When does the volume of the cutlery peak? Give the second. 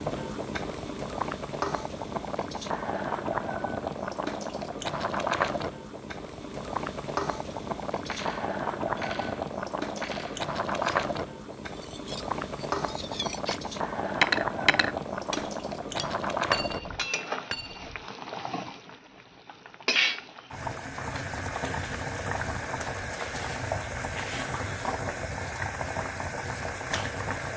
14 s.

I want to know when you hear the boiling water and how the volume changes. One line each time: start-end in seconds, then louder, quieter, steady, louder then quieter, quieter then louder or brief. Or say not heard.
0.0-27.5 steady.